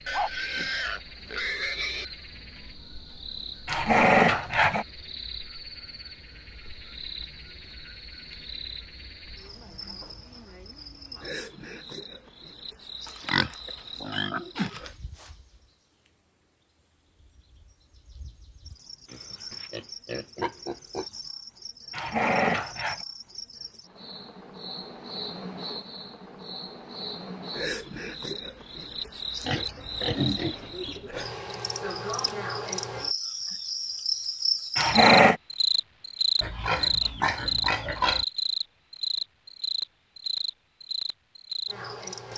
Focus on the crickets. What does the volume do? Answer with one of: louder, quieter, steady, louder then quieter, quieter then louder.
louder.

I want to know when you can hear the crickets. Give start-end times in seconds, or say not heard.
0.0-42.3.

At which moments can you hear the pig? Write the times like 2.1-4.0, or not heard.
0.1-2.0, 13.1-14.9, 19.1-21.1, 29.4-31.1, 36.4-38.2.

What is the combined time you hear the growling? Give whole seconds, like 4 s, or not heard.
3 s.